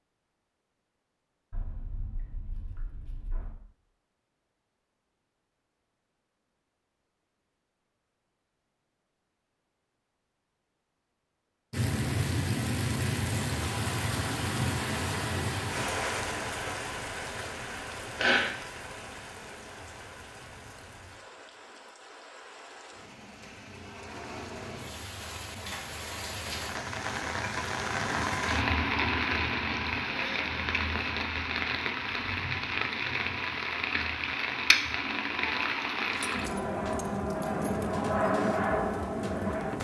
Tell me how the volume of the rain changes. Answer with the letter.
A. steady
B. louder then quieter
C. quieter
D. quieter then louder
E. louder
D.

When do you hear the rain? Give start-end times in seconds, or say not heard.
11.7-39.8.